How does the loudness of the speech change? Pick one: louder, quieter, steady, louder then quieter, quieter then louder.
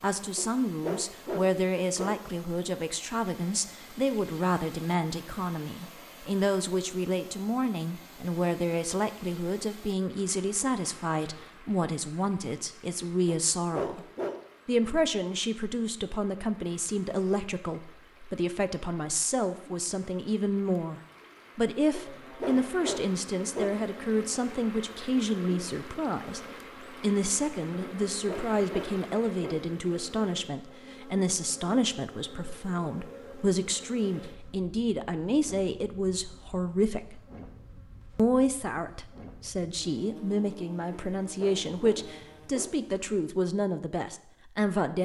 steady.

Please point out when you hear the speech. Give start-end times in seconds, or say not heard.
0.0-14.1, 14.7-26.4, 27.0-37.2, 38.1-45.0.